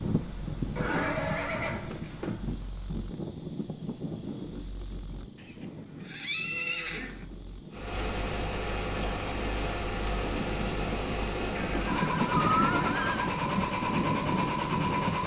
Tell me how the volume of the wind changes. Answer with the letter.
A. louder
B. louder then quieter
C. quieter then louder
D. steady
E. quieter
C.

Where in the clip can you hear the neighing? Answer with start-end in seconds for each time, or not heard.
0.8-2.4, 5.3-7.2, 11.6-13.3.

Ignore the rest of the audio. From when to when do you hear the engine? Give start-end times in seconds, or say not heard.
7.7-15.2.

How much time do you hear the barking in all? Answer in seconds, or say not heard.
not heard.